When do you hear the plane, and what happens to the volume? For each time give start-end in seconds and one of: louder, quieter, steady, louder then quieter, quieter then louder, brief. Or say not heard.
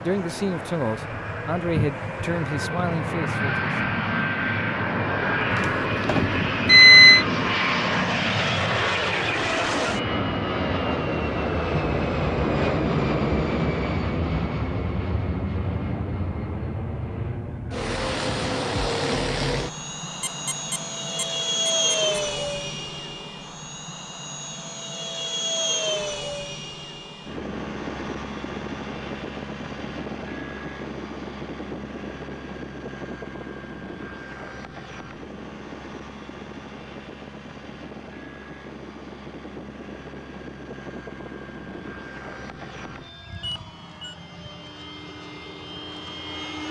0.0-46.6 quieter.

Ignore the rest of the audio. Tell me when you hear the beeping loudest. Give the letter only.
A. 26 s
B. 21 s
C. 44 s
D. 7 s
D.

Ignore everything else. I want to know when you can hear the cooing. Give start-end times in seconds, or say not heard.
not heard.